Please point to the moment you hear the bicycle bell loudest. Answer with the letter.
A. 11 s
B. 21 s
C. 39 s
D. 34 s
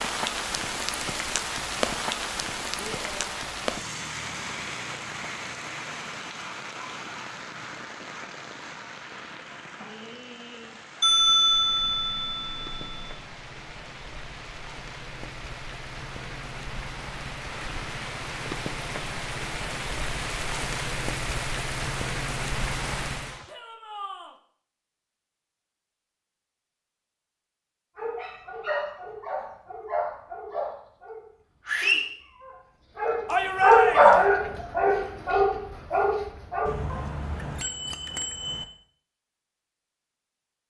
A.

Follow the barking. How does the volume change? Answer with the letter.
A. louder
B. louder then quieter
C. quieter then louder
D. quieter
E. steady
B.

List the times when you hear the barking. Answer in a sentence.
The barking can be heard from 27.9 to 37.0 s.